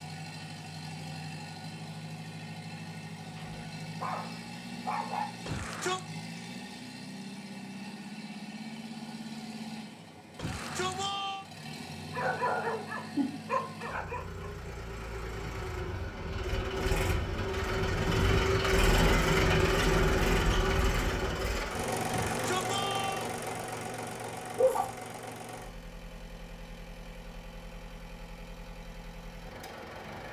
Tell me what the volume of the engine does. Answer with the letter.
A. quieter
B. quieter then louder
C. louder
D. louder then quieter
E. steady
D.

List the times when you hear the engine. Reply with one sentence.
The engine can be heard from 0.0 to 30.2 s.